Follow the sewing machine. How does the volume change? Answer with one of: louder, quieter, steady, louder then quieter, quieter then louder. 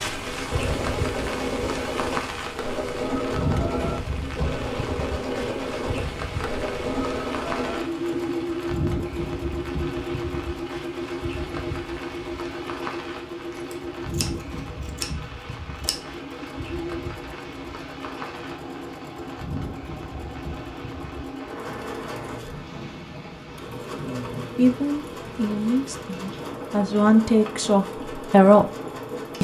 quieter.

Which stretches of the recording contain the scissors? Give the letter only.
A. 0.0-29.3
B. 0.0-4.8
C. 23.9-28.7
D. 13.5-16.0
D.